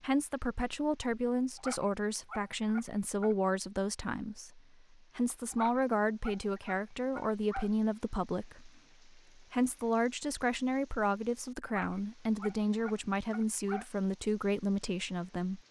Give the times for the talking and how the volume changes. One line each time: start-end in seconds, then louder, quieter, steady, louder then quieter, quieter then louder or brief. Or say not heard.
0.0-15.6 steady.